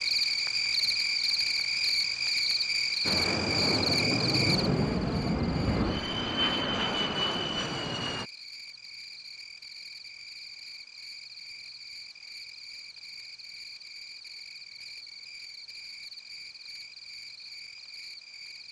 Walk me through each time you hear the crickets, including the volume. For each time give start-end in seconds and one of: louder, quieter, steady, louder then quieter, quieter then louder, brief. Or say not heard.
0.0-18.6 quieter.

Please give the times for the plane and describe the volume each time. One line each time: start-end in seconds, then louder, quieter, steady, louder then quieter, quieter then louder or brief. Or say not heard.
3.0-8.3 steady.